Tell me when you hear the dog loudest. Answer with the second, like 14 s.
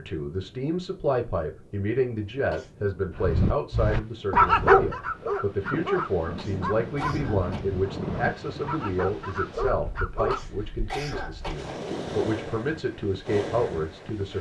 5 s.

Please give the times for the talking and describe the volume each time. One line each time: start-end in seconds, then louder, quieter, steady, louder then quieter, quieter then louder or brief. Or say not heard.
0.0-14.3 steady.